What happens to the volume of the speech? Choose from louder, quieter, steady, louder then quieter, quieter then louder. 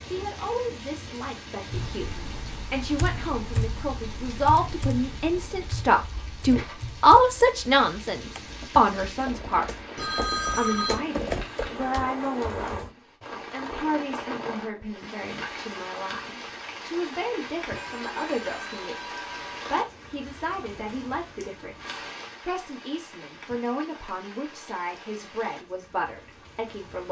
louder then quieter.